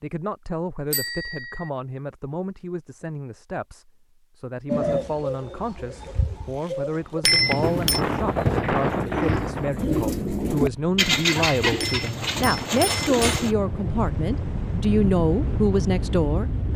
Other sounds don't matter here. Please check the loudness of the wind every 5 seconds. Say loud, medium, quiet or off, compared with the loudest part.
off, loud, medium, loud.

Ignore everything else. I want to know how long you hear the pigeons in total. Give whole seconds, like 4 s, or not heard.
9 s.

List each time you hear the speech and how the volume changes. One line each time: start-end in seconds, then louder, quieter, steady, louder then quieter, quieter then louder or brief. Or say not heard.
0.0-16.4 louder.